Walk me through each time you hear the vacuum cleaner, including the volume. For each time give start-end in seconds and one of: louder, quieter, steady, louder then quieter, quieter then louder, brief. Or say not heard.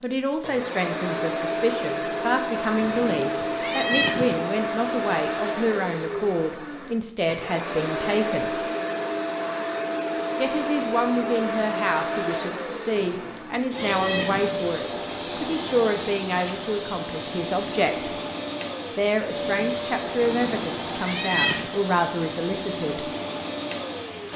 0.0-24.3 steady.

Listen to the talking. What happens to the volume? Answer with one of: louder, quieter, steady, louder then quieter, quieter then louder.
steady.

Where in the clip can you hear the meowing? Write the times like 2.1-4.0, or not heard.
2.8-4.5, 12.9-14.6, 20.2-21.7.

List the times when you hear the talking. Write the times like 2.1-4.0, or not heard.
0.0-8.7, 10.3-18.1, 18.9-23.1.